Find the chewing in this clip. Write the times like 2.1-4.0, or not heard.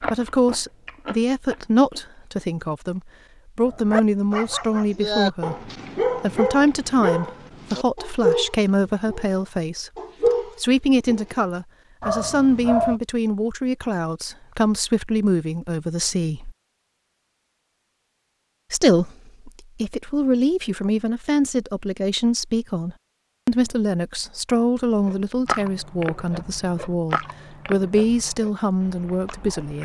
0.0-2.5, 25.1-29.7.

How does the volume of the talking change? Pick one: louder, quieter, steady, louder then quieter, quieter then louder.
steady.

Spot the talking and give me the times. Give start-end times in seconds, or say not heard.
0.0-16.5, 18.7-29.7.